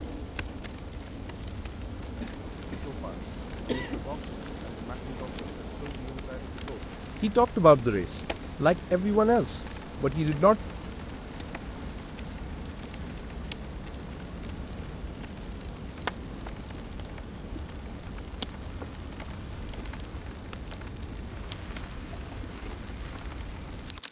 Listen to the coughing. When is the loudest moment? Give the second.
4 s.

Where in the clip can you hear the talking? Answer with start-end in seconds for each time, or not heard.
2.7-10.6.